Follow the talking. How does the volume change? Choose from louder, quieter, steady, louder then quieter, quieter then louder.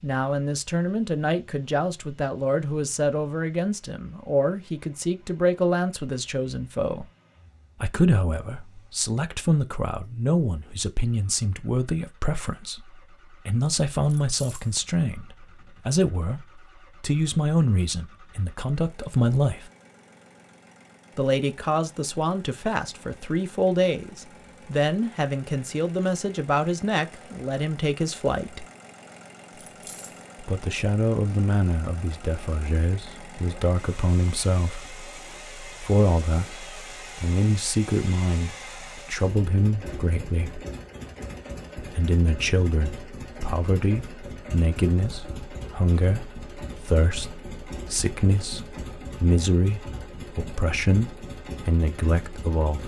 steady.